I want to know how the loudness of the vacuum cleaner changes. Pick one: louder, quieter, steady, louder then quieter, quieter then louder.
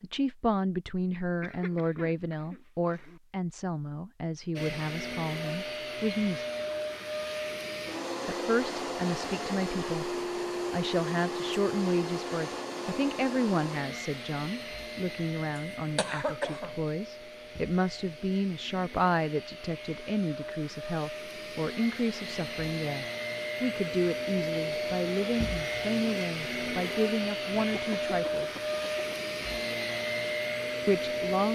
quieter then louder.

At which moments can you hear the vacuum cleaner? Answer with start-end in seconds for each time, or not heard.
4.5-31.5.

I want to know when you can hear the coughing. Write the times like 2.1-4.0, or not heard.
1.2-3.2, 15.9-16.8, 27.6-29.2.